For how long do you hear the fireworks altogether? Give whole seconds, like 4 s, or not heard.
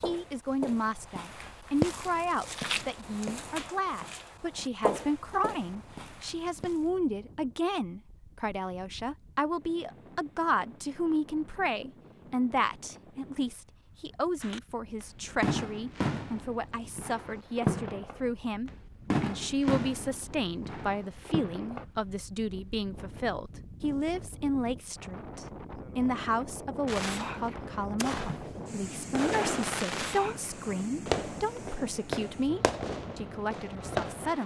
15 s.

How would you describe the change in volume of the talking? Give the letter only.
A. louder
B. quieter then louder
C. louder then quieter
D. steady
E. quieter
D.